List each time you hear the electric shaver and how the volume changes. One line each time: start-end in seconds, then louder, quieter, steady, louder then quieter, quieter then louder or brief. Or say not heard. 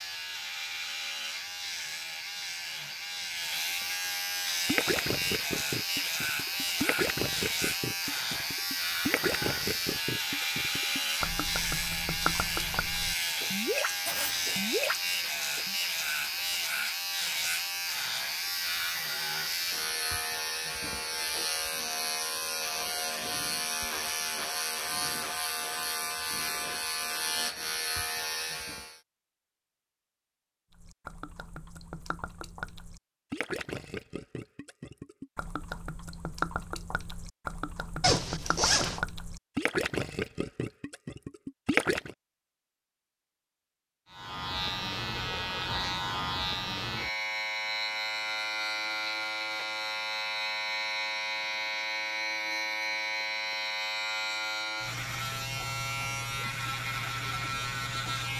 0.0-29.0 steady
44.1-58.3 steady.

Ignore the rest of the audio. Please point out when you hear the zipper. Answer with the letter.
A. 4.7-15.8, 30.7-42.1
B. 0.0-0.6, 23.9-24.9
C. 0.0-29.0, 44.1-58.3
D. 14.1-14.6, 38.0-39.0
D.